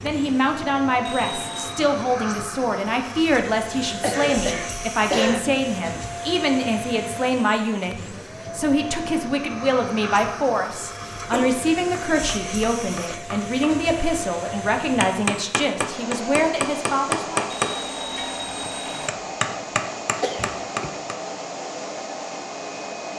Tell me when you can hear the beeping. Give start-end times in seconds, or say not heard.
1.1-1.9, 17.5-19.1.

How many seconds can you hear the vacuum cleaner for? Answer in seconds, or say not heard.
23 s.